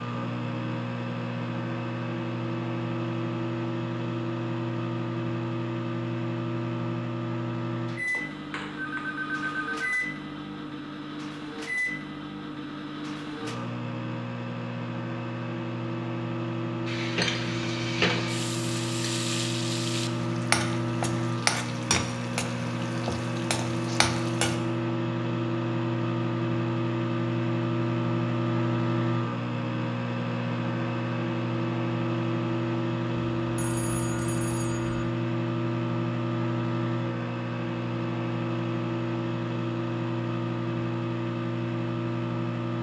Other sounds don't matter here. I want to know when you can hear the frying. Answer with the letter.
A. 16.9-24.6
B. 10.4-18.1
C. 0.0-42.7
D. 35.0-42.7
A.